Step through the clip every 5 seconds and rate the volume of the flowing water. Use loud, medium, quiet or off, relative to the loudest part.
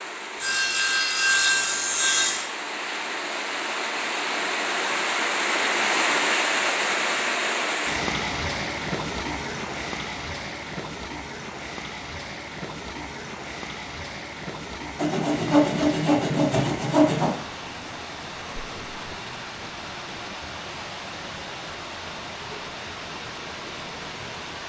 medium, loud, medium, medium, medium.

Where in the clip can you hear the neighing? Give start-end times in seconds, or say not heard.
not heard.